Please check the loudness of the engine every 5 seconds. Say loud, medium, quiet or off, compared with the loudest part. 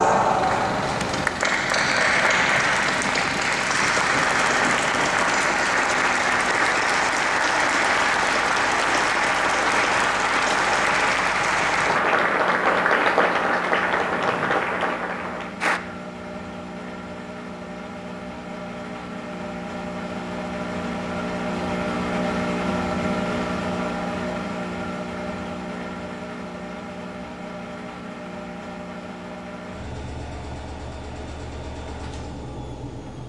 medium, medium, medium, medium, loud, medium, medium.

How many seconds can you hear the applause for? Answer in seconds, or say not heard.
16 s.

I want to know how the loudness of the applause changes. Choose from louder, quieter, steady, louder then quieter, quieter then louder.
steady.